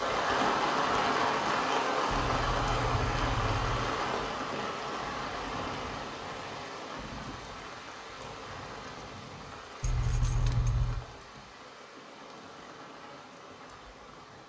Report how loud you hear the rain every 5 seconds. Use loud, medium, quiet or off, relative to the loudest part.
loud, medium, quiet.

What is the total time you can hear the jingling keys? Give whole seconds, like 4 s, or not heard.
3 s.